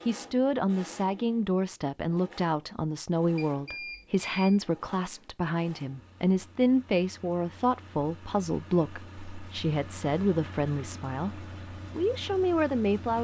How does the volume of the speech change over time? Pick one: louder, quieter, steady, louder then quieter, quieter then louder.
steady.